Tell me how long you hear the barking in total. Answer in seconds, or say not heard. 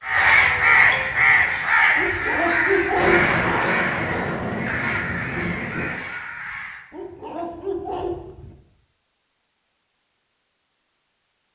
3 s.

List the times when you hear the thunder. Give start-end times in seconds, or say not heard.
3.0-6.0.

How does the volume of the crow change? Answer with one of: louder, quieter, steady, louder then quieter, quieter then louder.
quieter.